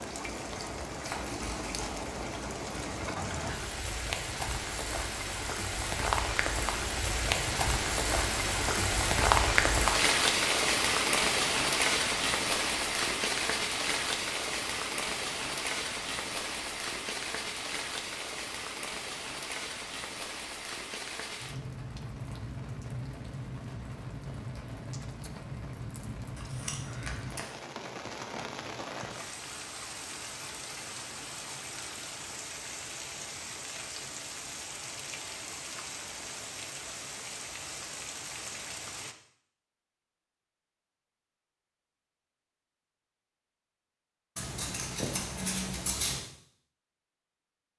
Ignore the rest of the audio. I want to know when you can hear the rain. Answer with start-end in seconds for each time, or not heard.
0.0-39.1.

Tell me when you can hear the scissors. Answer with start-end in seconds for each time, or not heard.
1.0-1.9, 26.4-27.4, 44.4-46.2.